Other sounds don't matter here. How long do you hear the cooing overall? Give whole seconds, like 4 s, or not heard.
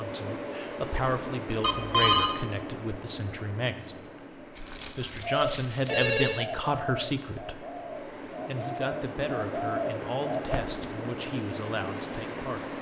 5 s.